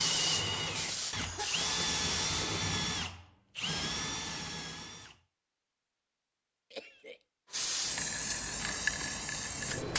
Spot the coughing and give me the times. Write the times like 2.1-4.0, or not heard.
1.1-1.9, 6.7-7.2.